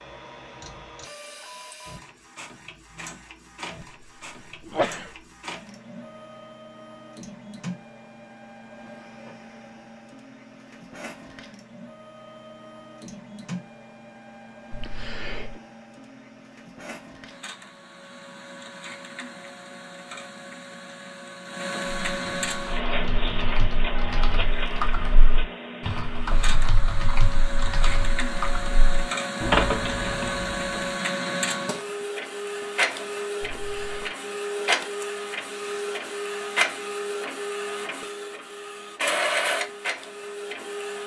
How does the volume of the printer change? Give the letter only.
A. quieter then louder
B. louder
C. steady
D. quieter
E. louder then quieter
B.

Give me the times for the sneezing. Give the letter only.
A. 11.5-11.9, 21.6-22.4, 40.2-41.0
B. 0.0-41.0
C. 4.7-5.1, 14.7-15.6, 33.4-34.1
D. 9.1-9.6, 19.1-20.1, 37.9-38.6
C.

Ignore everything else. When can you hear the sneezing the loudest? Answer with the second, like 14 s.
5 s.